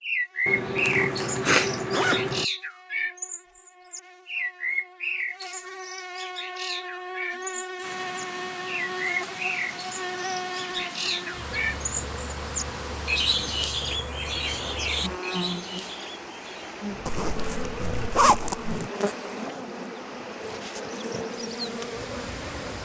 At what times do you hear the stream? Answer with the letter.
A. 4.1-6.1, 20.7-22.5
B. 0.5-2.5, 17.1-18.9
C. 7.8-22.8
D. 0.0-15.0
C.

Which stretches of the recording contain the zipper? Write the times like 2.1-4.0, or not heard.
0.5-2.5, 17.1-18.9.